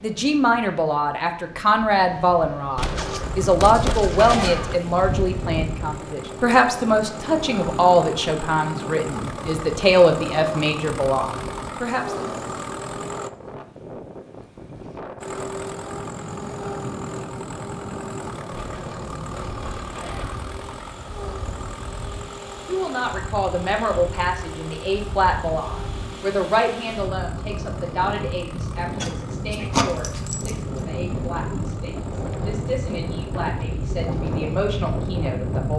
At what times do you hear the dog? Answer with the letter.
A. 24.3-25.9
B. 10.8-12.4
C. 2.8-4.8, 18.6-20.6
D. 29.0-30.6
D.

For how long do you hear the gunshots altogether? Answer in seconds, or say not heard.
4 s.